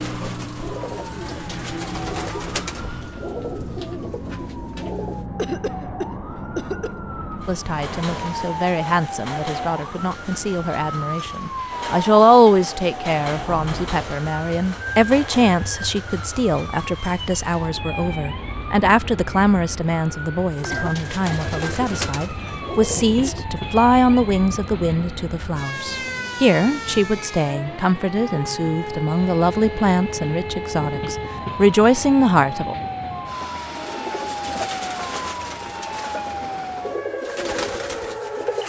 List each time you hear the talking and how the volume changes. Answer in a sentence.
The talking can be heard from 7.5 to 32.8 s, at a steady volume.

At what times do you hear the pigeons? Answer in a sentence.
You can hear the pigeons from 0.0 to 5.2 s, from 20.5 to 23.4 s and from 33.7 to 38.6 s.